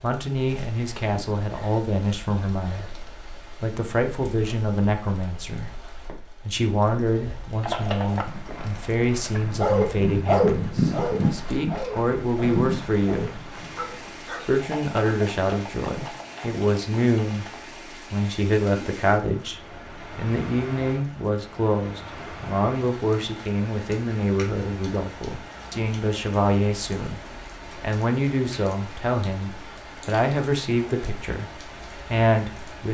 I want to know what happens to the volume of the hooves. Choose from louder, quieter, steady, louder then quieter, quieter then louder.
louder then quieter.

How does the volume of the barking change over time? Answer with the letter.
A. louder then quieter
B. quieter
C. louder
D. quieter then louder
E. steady
B.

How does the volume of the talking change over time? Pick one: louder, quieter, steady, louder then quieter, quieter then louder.
steady.